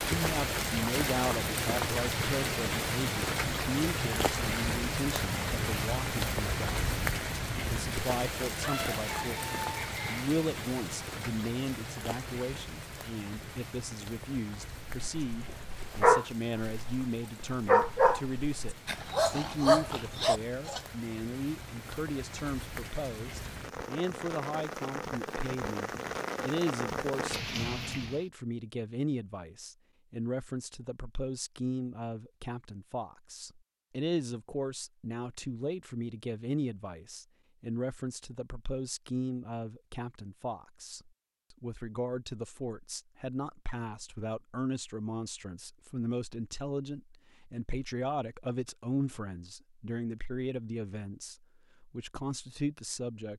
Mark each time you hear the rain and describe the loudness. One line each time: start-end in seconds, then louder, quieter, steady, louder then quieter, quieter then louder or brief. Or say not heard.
0.0-28.2 quieter then louder.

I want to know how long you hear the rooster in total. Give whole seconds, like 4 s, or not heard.
2 s.